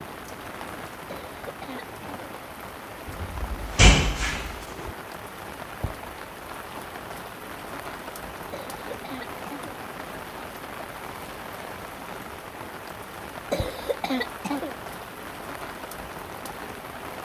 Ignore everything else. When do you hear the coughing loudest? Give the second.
14 s.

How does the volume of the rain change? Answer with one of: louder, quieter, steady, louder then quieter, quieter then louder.
steady.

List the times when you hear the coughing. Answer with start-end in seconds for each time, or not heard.
1.1-2.4, 8.5-9.8, 13.5-14.8.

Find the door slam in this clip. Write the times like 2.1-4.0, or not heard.
3.0-4.9.